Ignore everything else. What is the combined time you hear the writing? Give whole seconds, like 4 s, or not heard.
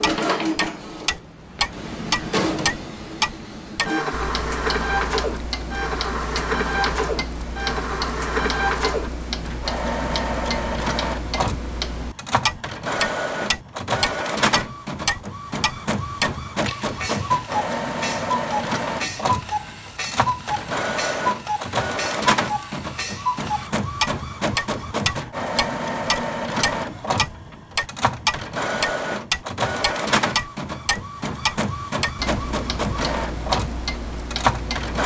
not heard.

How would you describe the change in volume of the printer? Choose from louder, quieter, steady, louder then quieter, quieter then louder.
steady.